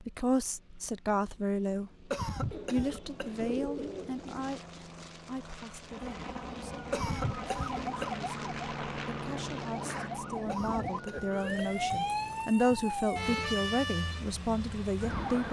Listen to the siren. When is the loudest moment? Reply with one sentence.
The volume of the siren peaks at 12 seconds.